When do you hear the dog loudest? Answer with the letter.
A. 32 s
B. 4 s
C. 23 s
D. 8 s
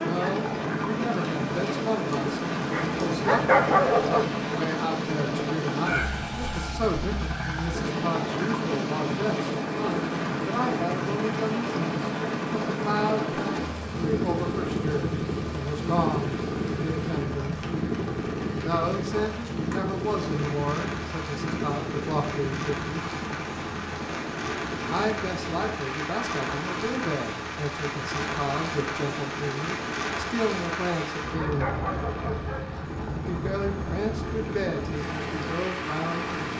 B.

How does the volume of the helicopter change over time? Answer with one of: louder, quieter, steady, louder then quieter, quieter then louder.
quieter.